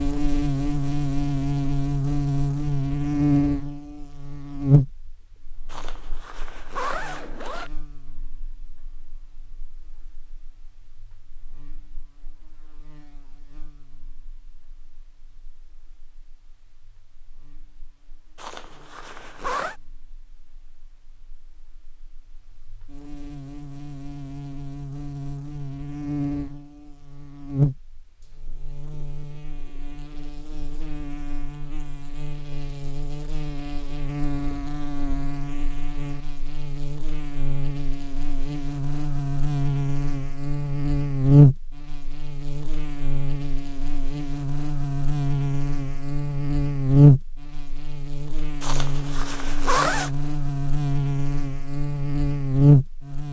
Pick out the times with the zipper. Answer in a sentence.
You can hear the zipper from 5.7 to 7.7 s, from 18.4 to 19.8 s and from 48.6 to 50.1 s.